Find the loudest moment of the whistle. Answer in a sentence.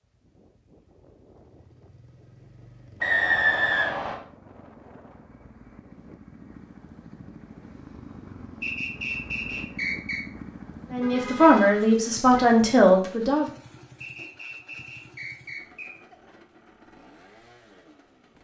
The loudest moment of the whistle is at 3 seconds.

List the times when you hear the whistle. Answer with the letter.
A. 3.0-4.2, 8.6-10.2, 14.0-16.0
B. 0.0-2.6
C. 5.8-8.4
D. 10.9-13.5
A.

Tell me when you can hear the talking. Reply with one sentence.
The talking can be heard from 10.9 to 13.5 s.